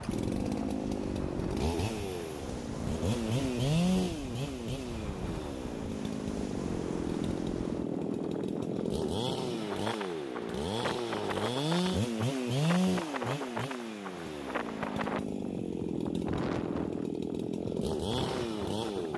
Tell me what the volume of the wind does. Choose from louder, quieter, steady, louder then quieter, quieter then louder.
steady.